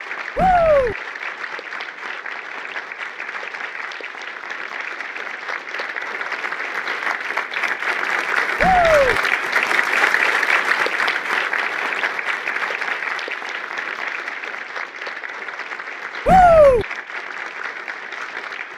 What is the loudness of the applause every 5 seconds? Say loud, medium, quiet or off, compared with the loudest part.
medium, loud, loud, medium.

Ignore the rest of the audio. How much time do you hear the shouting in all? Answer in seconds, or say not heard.
2 s.